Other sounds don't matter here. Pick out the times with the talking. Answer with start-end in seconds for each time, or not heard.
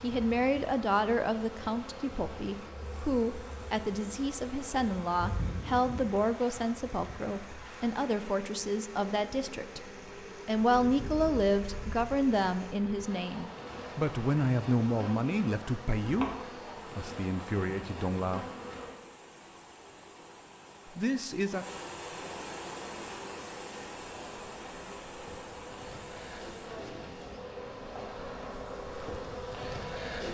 0.0-9.8, 10.4-16.3, 16.9-18.4, 20.9-21.6.